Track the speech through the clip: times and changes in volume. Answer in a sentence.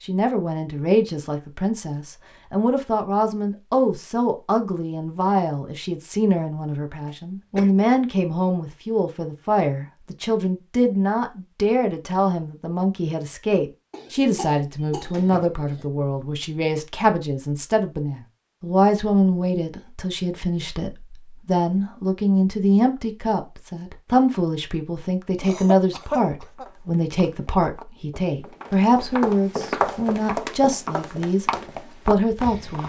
The speech can be heard from 0.0 to 32.8 s, at a steady volume.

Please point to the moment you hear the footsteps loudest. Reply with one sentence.
The loudest moment of the footsteps is at 30 seconds.